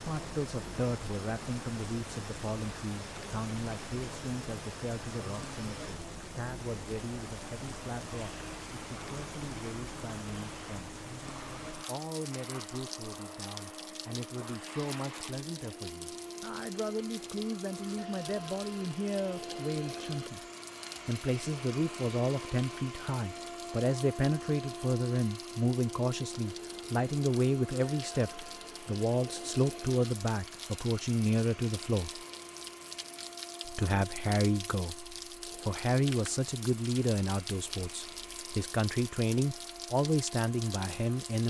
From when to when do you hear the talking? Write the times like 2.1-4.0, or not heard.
0.1-11.0, 11.8-20.4, 21.1-32.2, 33.6-41.4.